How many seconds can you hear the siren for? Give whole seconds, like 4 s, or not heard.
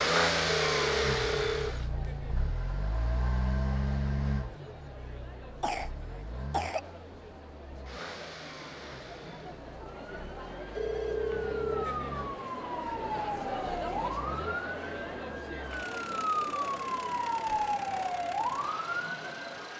10 s.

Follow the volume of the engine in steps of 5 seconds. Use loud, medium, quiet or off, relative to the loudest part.
loud, quiet, quiet, quiet.